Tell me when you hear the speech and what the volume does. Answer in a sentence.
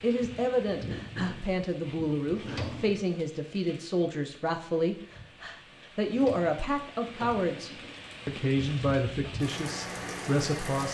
You can hear the speech from 0.0 to 10.8 s, at a steady volume.